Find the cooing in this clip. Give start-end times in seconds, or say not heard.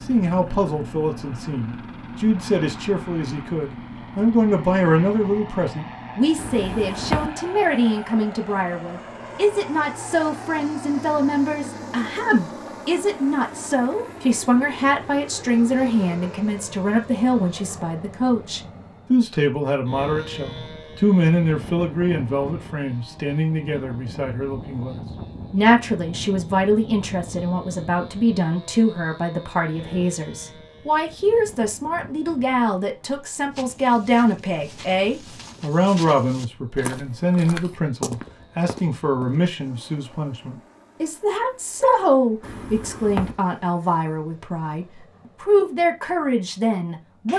6.3-7.4, 42.4-43.5.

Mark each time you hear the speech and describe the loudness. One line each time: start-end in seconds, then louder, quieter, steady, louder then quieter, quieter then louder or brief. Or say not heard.
0.1-47.3 steady.